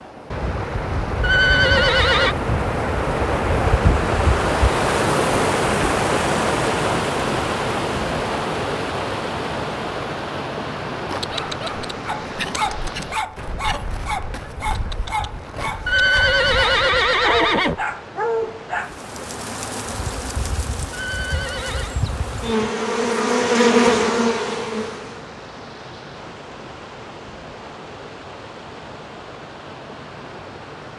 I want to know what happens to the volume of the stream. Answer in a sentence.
The loudness of the stream goes down.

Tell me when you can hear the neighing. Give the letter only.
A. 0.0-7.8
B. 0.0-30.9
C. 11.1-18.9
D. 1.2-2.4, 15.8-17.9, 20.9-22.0
D.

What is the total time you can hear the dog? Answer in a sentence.
The dog can be heard for 8 seconds in total.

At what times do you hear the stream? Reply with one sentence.
You can hear the stream from 0.0 to 30.9 s.